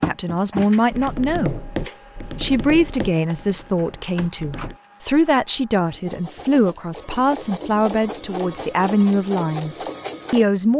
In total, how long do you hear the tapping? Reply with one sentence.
You can hear the tapping for 5 seconds altogether.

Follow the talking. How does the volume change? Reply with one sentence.
The volume of the talking stays about the same.